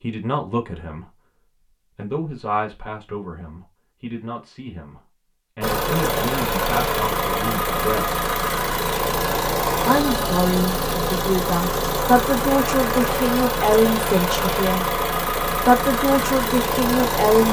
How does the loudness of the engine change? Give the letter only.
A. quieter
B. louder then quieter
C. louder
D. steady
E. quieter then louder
D.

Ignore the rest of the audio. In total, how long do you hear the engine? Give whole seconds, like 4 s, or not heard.
12 s.